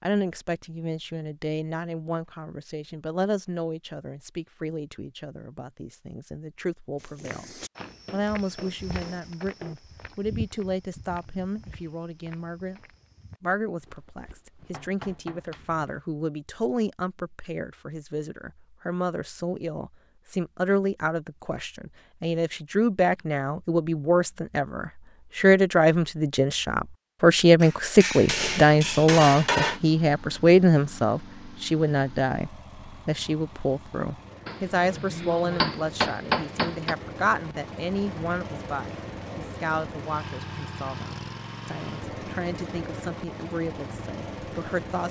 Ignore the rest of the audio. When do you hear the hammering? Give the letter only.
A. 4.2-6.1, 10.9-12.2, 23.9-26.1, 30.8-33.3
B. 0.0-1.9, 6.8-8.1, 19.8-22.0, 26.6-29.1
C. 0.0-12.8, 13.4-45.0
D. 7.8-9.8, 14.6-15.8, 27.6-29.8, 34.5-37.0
D.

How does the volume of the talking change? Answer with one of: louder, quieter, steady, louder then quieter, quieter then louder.
louder then quieter.